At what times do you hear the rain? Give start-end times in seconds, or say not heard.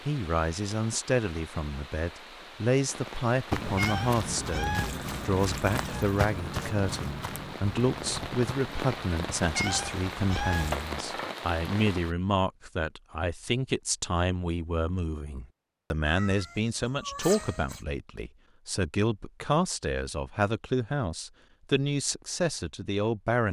0.0-12.2.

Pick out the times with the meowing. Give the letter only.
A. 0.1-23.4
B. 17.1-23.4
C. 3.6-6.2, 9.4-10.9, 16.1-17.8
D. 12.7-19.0
C.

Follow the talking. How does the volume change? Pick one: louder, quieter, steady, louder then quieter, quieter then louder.
steady.